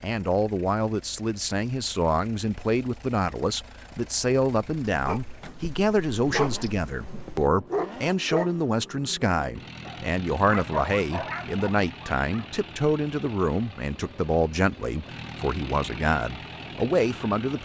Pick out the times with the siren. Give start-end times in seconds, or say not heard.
not heard.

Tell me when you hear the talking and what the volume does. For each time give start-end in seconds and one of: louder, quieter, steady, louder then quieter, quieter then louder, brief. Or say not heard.
0.0-17.6 steady.